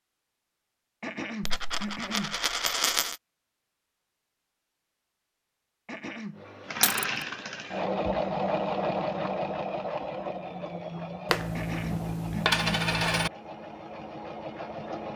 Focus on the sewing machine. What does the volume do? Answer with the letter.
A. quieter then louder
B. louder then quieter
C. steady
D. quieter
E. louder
D.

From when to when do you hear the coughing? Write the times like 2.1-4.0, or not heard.
1.0-2.4, 5.8-6.5, 11.6-12.8.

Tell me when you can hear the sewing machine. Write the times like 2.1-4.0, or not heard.
6.3-15.1.